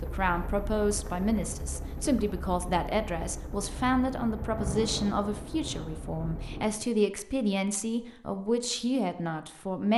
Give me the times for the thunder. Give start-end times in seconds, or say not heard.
4.3-6.8.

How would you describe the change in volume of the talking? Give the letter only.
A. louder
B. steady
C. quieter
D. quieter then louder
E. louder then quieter
B.